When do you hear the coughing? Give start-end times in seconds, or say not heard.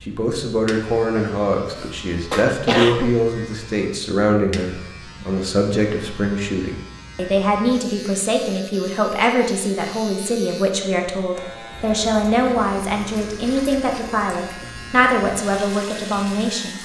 1.8-3.1.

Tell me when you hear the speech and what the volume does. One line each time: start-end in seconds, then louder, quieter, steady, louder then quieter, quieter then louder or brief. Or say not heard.
0.0-16.8 steady.